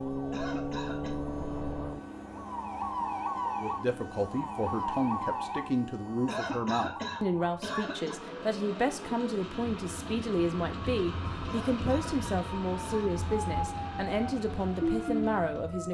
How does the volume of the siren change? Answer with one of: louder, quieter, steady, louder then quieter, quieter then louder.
quieter then louder.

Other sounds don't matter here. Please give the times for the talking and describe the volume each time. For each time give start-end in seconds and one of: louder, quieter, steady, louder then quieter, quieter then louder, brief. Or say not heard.
3.5-15.8 steady.